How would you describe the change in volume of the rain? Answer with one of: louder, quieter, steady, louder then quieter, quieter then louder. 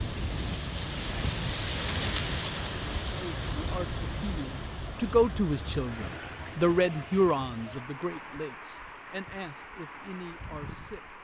quieter.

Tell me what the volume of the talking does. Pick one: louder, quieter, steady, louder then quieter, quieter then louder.
louder then quieter.